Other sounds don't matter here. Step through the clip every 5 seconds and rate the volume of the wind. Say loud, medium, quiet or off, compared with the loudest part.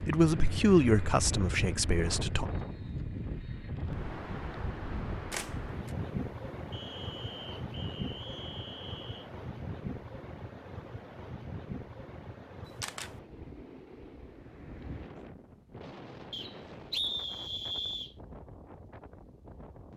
loud, loud, medium, medium.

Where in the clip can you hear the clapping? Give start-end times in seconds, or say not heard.
not heard.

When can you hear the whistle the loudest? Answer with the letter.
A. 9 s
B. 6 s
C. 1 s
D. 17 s
D.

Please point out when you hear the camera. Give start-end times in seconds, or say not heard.
5.3-6.0, 12.7-13.1.